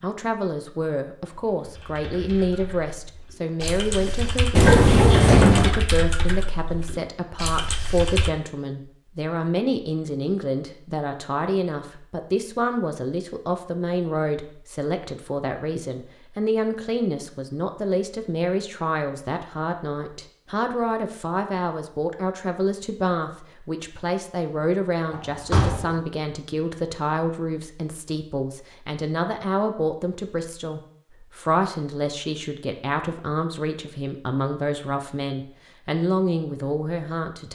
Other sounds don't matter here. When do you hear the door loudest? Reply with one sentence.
The volume of the door peaks at 5 seconds.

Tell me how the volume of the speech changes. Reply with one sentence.
The volume of the speech stays about the same.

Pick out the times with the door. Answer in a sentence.
The door can be heard from 4.5 to 5.8 s and from 25.1 to 25.9 s.